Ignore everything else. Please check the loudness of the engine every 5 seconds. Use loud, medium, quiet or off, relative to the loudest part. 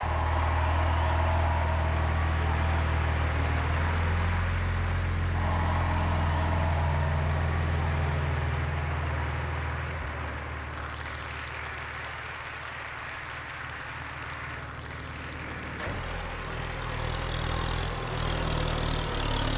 loud, loud, quiet, loud.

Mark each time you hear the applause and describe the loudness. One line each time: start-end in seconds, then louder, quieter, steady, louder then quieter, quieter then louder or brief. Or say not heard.
0.0-19.5 quieter.